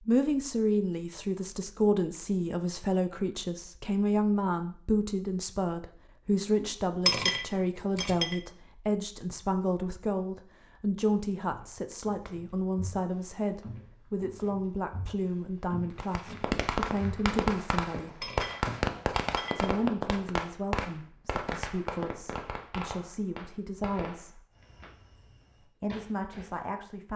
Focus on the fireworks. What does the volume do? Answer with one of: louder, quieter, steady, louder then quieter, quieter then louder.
quieter.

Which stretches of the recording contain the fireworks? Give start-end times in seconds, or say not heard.
16.0-26.6.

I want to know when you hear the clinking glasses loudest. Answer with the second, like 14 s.
7 s.